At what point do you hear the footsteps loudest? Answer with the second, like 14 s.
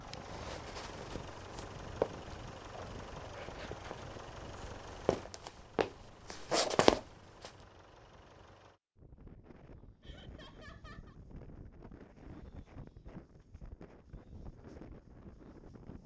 7 s.